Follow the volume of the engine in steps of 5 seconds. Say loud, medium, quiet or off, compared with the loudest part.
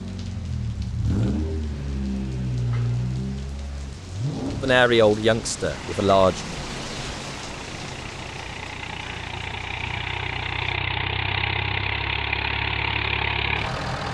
loud, medium, loud.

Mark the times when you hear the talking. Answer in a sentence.
You can hear the talking from 4.6 to 6.4 s.